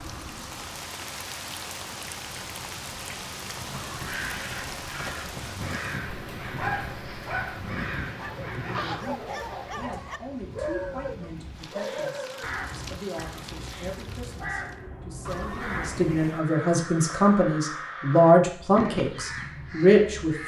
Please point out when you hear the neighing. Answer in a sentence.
You can hear the neighing from 3.7 to 5.5 s and from 15.2 to 16.5 s.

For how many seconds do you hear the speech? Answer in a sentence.
The speech can be heard for 12 seconds in total.